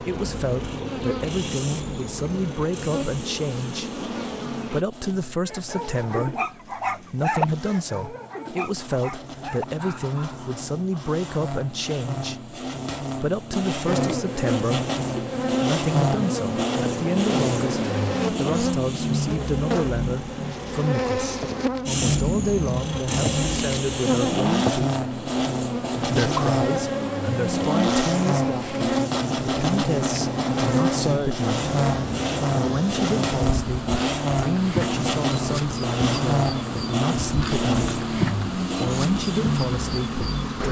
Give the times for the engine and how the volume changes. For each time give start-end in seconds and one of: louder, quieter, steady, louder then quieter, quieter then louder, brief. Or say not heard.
0.0-40.6 louder.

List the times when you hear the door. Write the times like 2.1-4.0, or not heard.
not heard.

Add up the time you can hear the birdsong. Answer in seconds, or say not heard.
not heard.